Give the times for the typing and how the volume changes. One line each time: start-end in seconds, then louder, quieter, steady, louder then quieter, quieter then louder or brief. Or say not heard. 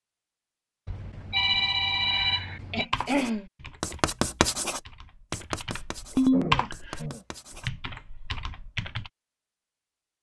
2.8-9.1 louder then quieter.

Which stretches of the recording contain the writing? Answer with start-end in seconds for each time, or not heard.
3.0-7.7.